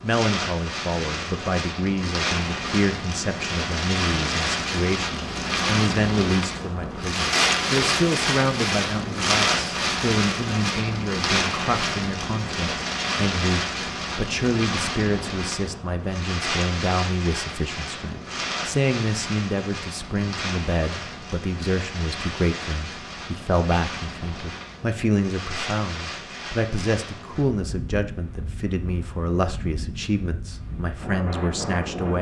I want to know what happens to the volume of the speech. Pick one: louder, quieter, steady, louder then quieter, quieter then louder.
steady.